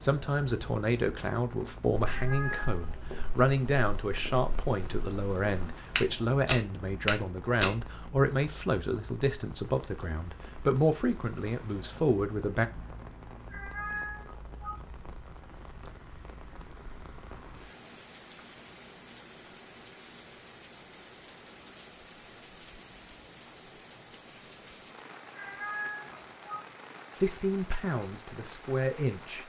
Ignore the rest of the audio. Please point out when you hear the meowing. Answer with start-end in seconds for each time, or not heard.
2.0-2.9, 13.5-14.8, 25.4-26.6.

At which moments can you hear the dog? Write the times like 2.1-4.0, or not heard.
not heard.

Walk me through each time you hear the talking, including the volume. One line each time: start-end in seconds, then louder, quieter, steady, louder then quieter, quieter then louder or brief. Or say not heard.
0.0-12.7 steady
27.1-29.4 brief.